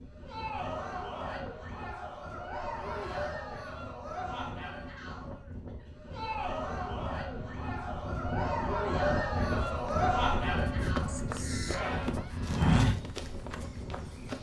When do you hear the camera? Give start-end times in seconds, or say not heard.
11.1-11.9.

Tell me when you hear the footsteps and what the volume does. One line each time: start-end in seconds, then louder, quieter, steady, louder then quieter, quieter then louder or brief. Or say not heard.
9.6-14.3 louder then quieter.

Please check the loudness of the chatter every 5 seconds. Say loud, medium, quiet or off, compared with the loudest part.
medium, loud, loud.